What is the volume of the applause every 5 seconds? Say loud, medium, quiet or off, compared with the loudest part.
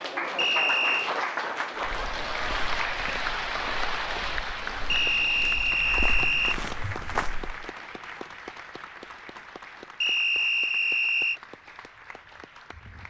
loud, medium, quiet.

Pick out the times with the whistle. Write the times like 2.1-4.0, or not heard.
0.3-1.1, 4.8-6.6, 10.0-11.4.